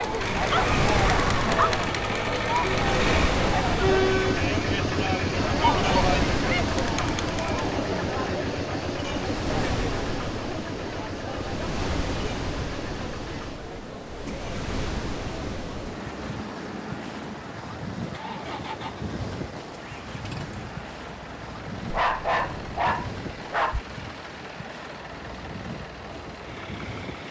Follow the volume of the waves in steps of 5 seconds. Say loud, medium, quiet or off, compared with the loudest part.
loud, loud, medium, medium, medium, medium.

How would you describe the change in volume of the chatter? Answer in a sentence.
The loudness of the chatter goes down.